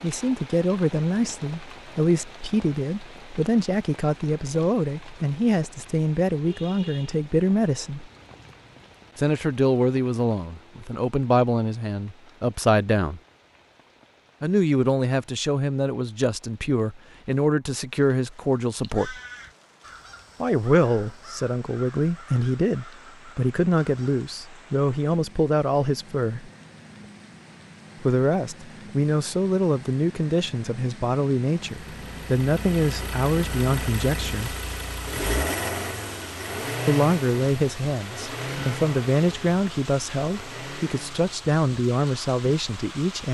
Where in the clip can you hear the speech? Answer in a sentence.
The speech can be heard from 0.0 to 8.1 s, from 9.2 to 13.2 s, from 14.4 to 19.2 s, from 20.4 to 26.5 s, from 28.0 to 34.5 s and from 36.9 to 43.2 s.